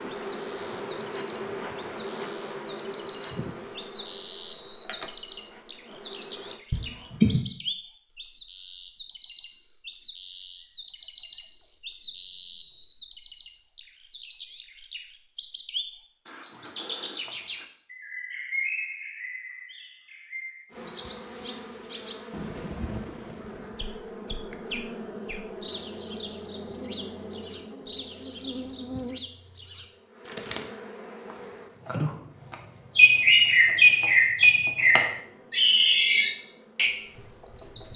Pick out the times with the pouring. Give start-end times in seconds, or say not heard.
not heard.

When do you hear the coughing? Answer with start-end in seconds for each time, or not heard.
6.7-7.4.